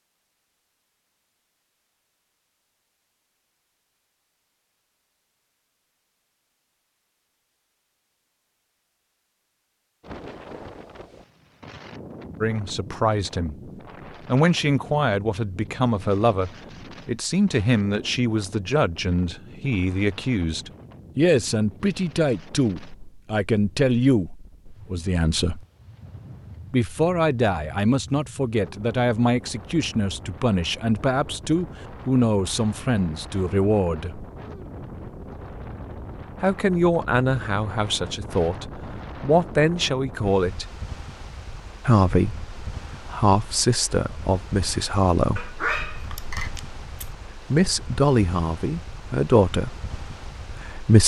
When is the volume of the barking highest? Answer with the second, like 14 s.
46 s.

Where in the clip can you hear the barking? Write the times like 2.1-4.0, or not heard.
45.4-47.1.